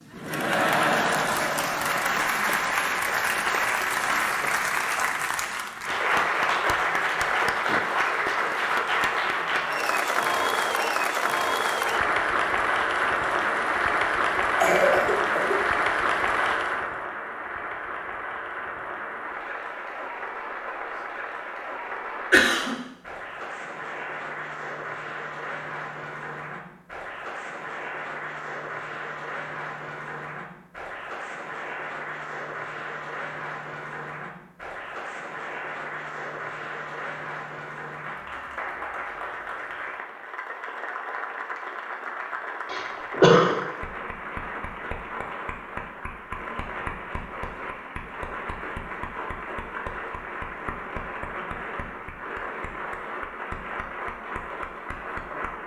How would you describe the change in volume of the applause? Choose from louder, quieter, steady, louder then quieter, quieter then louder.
quieter.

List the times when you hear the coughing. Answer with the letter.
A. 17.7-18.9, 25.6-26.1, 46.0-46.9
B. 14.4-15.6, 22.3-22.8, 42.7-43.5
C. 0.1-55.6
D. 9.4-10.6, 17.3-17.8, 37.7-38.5
B.